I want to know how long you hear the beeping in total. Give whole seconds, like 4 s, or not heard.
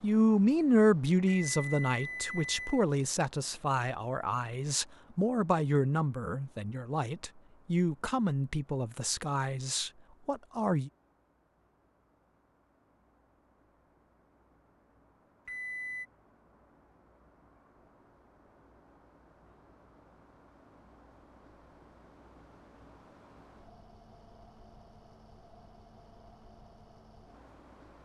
2 s.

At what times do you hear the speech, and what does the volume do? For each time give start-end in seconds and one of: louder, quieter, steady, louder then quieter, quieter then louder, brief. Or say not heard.
0.0-10.9 quieter.